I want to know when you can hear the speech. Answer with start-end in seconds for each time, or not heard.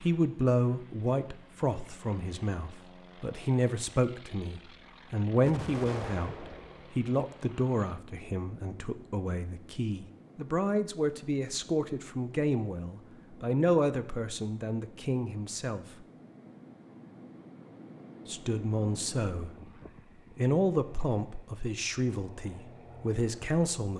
0.0-16.1, 18.2-19.6, 20.4-23.9.